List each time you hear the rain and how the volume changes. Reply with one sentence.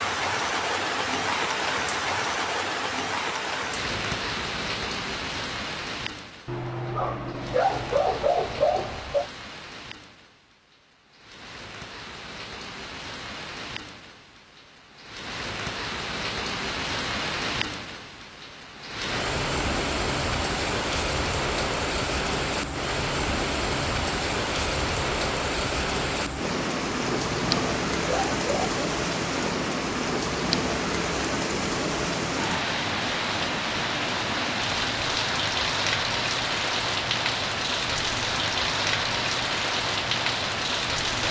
The rain can be heard from 0.0 to 41.2 s, getting quieter then louder.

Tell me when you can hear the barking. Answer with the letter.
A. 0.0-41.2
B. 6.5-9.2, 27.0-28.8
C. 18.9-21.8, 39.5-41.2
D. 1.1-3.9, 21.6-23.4
B.